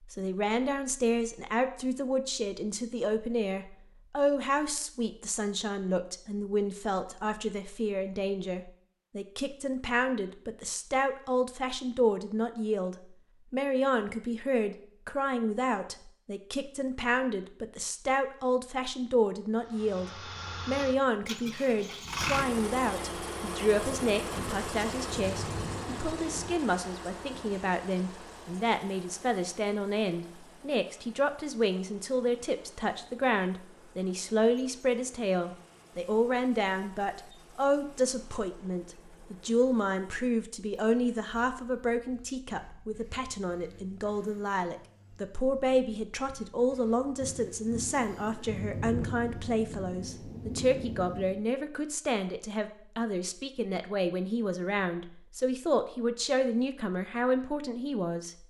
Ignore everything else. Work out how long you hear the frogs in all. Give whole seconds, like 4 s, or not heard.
not heard.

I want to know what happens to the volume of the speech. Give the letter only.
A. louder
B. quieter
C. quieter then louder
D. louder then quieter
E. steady
E.